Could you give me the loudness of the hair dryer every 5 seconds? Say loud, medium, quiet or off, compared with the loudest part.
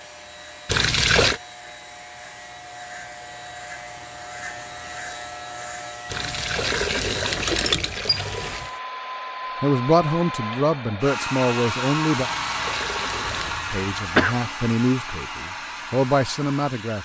quiet, medium, loud, medium.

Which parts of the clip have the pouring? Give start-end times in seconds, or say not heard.
0.7-1.4, 6.1-8.7, 12.2-13.6.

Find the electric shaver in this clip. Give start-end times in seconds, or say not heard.
0.0-8.8.